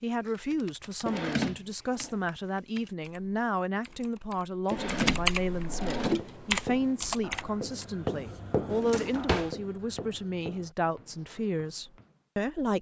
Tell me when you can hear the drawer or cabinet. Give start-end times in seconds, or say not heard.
1.1-2.1, 4.7-6.2, 8.7-9.6.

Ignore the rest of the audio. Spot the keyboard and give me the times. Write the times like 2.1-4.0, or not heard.
0.1-8.0.